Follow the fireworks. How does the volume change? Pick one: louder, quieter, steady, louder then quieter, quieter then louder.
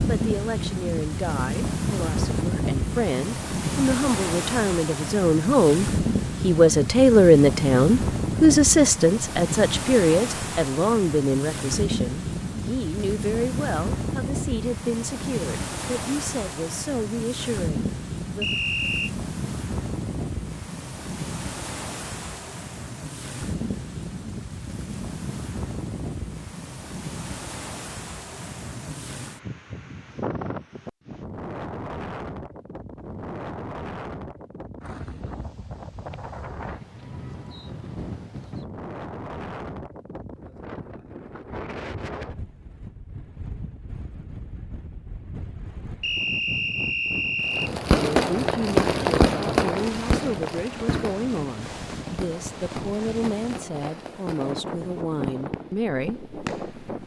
quieter.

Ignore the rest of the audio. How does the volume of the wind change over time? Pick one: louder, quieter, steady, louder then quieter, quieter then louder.
quieter.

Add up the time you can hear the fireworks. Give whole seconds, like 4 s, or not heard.
9 s.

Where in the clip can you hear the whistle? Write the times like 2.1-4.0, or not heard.
18.4-19.1, 46.0-47.7.